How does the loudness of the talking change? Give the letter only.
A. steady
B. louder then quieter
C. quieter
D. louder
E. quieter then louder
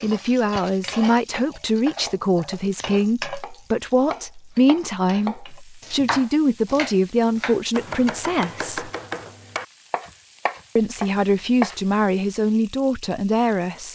A.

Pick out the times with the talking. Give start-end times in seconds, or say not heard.
0.0-8.9, 10.8-13.9.